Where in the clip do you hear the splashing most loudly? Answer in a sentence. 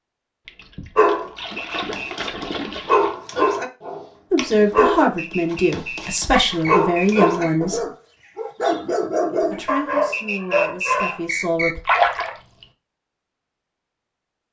The loudest moment of the splashing is at 12 seconds.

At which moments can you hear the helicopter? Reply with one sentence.
The helicopter can't be heard in this clip.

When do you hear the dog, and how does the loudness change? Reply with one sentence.
The dog can be heard from 0.9 to 11.2 s, at a steady volume.